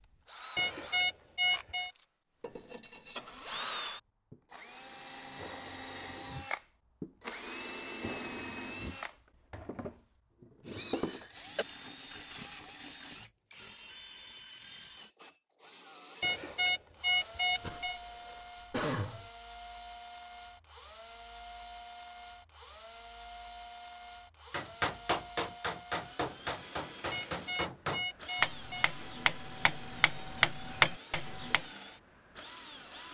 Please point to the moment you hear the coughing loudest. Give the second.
19 s.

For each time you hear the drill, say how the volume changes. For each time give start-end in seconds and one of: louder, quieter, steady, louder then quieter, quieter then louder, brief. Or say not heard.
0.0-33.0 quieter.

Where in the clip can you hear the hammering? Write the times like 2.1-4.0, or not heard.
24.5-31.6.